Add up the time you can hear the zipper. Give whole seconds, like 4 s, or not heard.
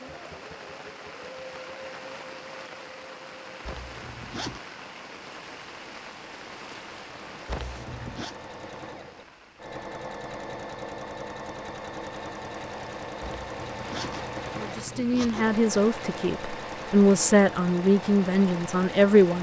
4 s.